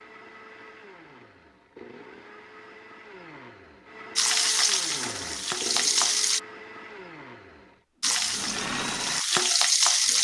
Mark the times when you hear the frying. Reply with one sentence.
You can hear the frying from 4.2 to 6.4 s and from 8.0 to 10.2 s.